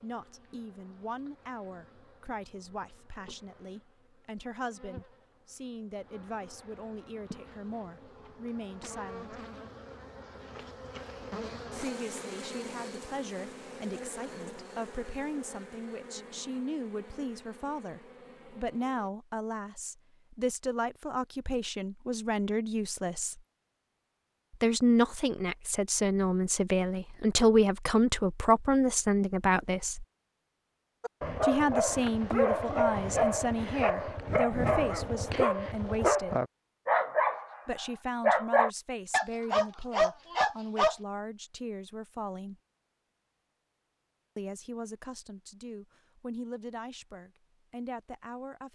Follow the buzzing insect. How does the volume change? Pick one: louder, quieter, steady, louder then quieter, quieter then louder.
louder then quieter.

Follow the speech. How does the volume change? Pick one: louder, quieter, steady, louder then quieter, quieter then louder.
louder then quieter.